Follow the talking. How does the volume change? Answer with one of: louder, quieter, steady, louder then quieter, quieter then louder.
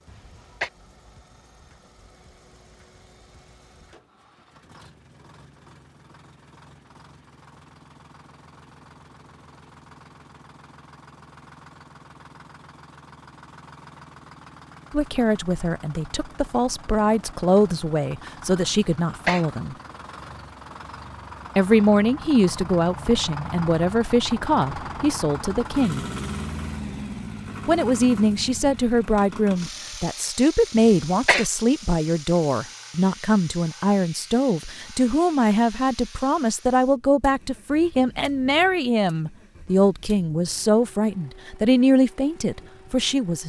steady.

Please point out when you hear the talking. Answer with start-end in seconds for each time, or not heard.
14.9-19.8, 21.6-26.1, 27.6-43.4.